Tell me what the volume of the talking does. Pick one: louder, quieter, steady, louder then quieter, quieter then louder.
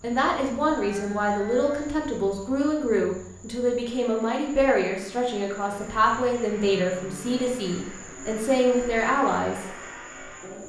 steady.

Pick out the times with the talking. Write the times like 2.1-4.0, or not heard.
0.0-9.7.